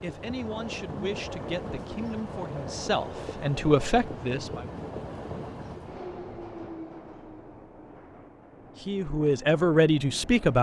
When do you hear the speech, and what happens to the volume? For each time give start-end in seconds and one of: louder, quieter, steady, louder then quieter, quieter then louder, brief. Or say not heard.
0.0-4.7 louder
8.8-10.5 brief.